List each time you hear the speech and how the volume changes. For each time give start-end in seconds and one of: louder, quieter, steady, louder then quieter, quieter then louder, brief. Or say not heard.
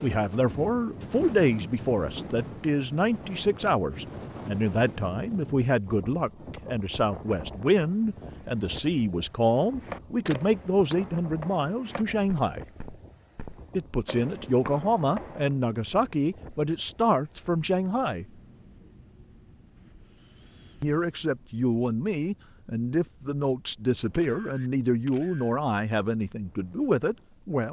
0.0-12.7 steady
13.8-18.2 steady
20.8-27.6 steady.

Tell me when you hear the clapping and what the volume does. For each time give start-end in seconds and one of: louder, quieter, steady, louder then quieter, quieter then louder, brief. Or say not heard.
not heard.